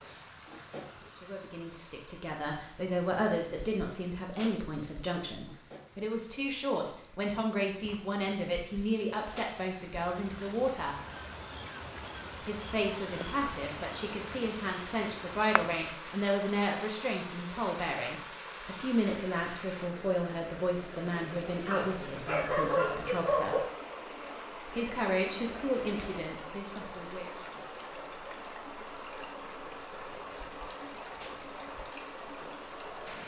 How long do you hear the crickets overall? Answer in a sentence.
The crickets can be heard for 33 seconds in total.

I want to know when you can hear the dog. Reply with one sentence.
You can hear the dog from 21.7 to 23.6 s.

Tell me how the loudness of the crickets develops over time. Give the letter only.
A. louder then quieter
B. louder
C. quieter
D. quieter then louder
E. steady
C.